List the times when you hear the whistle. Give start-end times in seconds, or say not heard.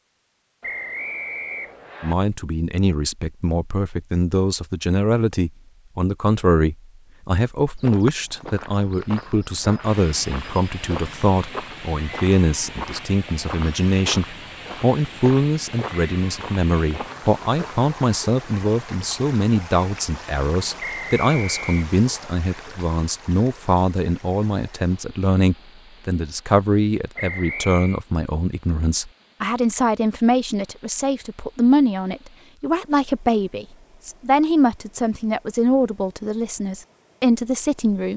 0.6-2.1, 20.8-21.9, 27.1-28.0.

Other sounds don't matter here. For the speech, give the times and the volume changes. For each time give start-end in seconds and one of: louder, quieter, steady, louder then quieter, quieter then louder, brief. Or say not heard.
2.0-38.1 steady.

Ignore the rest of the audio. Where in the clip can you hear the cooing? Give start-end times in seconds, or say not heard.
not heard.